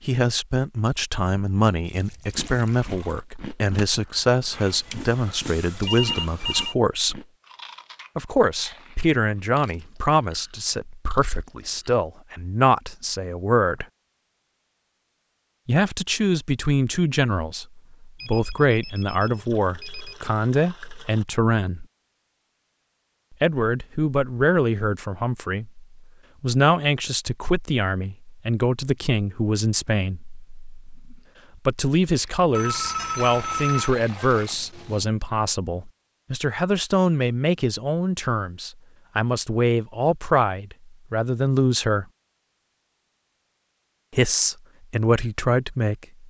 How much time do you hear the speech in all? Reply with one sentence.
You can hear the speech for 40 seconds altogether.